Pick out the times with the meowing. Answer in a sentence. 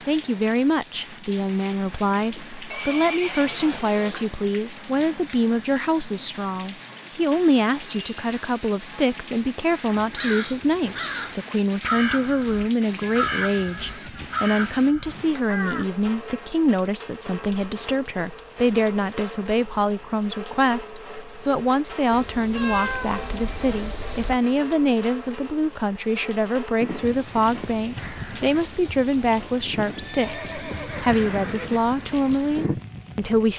The meowing can be heard from 22.1 to 24.4 s.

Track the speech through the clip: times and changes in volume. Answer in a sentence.
The speech can be heard from 0.1 to 33.5 s, at a steady volume.